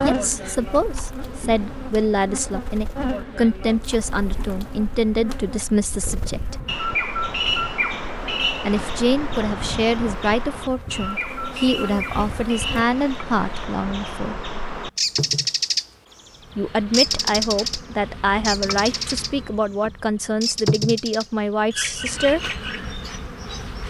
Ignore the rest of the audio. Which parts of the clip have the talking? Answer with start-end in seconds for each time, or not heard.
0.0-6.5, 8.7-14.4, 16.6-22.6.